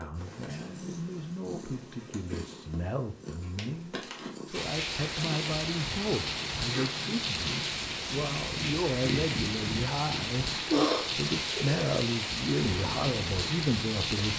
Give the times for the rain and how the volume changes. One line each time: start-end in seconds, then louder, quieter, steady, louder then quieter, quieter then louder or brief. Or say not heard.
4.5-14.3 steady.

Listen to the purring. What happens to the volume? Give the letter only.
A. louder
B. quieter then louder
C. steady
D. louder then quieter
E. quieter
D.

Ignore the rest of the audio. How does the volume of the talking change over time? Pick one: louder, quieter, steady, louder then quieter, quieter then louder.
louder.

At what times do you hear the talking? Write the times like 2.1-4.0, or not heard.
0.0-14.3.